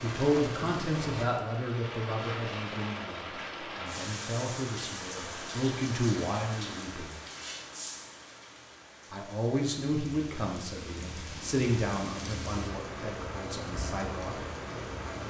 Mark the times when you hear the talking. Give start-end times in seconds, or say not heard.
0.0-7.2, 9.1-14.4.